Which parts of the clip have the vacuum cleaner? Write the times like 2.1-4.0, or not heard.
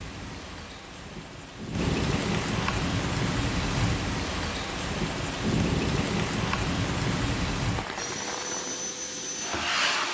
8.0-10.0.